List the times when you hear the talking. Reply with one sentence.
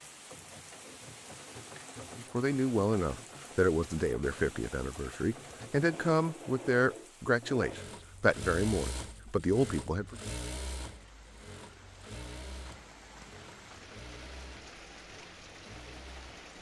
You can hear the talking from 2.1 to 10.2 s.